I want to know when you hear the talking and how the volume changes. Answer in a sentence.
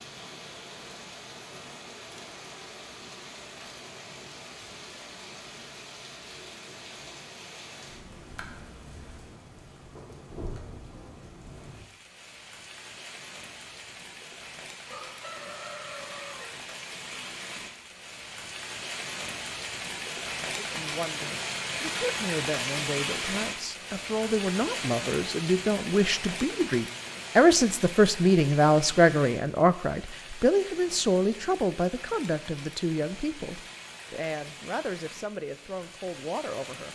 The talking can be heard from 20.6 to 36.8 s, getting louder then quieter.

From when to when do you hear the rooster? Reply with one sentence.
You can hear the rooster from 14.8 to 16.5 s.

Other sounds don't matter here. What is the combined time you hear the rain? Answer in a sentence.
You can hear the rain for 37 seconds altogether.